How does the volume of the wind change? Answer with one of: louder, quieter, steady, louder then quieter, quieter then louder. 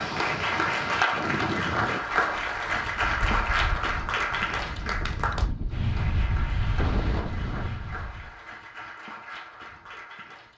quieter then louder.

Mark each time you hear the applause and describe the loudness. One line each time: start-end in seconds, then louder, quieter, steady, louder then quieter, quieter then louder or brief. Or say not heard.
0.0-10.5 quieter.